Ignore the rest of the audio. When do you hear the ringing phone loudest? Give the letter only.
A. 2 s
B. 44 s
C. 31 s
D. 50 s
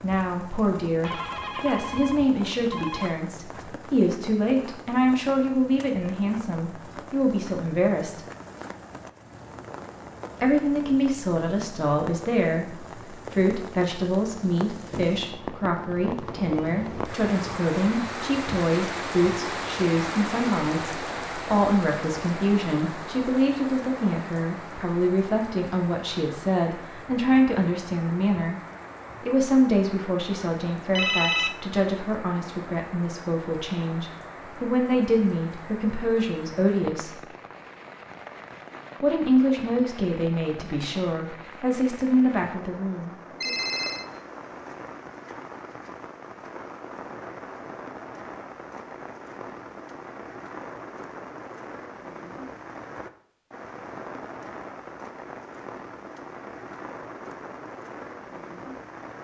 C.